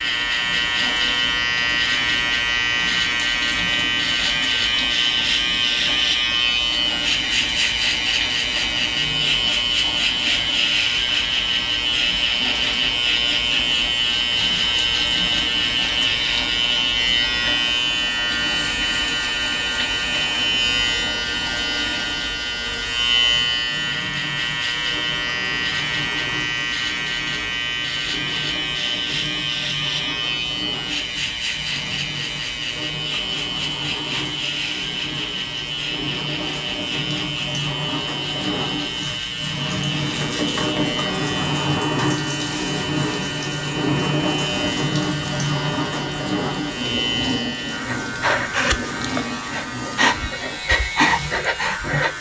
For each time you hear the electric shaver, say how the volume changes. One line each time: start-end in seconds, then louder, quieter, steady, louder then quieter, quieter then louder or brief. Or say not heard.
0.0-52.1 quieter.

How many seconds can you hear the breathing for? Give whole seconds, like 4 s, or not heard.
4 s.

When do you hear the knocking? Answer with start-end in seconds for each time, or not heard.
40.0-41.1.